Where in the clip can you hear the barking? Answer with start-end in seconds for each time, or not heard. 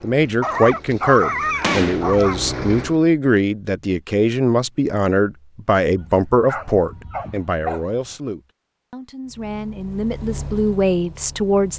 0.4-2.4, 6.0-7.9.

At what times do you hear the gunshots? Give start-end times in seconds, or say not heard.
1.6-2.1.